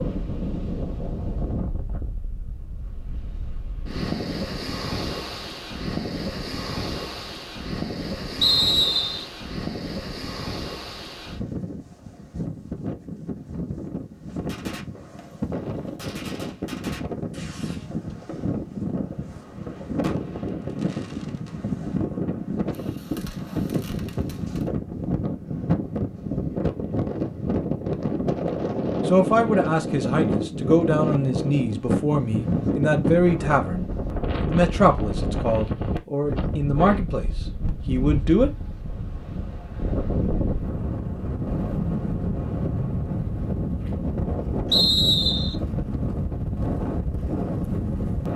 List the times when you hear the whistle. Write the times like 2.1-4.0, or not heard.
8.4-9.2, 44.7-45.5.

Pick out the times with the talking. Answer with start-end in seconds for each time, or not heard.
29.1-38.5.